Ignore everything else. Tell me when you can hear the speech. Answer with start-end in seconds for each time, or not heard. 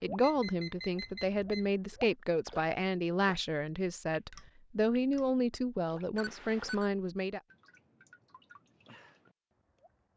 0.0-7.4.